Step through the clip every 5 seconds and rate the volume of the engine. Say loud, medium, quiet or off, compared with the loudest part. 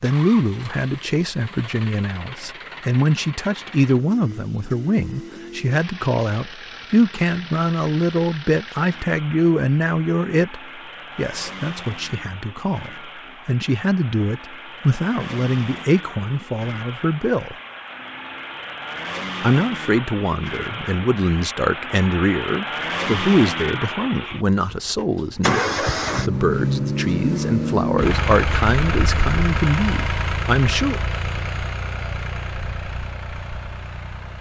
quiet, quiet, quiet, medium, medium, loud, medium.